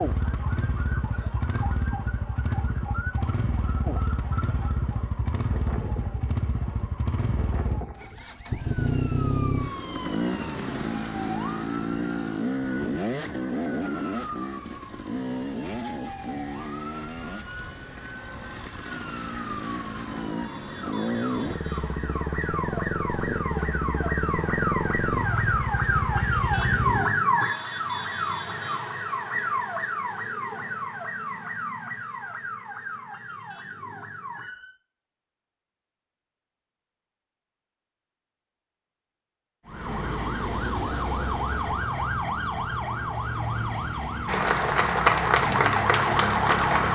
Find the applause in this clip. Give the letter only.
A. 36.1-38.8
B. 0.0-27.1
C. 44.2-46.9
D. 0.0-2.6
C.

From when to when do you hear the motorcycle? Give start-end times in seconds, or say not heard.
0.0-27.1.